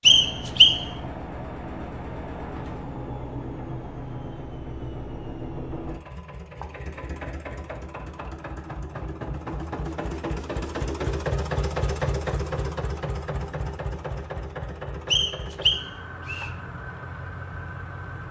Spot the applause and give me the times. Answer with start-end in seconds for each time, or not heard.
not heard.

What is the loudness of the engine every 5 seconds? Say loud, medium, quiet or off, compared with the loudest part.
medium, medium, loud, medium.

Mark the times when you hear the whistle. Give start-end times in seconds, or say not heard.
0.1-0.8, 15.1-16.5.